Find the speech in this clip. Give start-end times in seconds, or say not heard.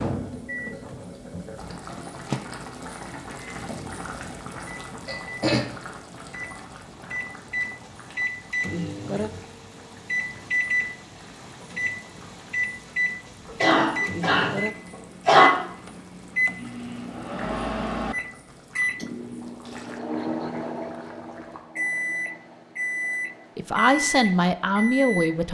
23.6-25.4.